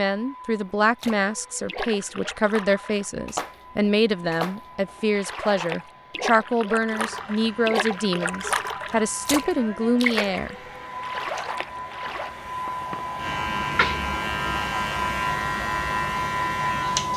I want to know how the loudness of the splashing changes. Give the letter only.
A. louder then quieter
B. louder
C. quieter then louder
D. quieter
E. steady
B.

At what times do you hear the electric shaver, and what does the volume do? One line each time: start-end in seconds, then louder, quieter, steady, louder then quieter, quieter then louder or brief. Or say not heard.
7.0-17.1 louder.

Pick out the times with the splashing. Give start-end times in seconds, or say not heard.
0.7-12.3.